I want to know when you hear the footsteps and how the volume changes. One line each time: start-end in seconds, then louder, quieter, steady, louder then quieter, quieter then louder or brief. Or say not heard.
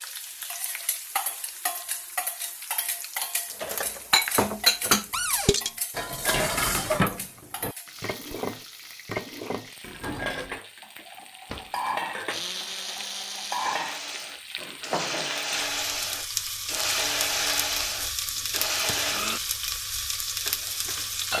not heard.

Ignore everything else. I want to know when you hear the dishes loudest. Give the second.
5 s.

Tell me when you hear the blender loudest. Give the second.
17 s.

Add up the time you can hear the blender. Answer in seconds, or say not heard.
7 s.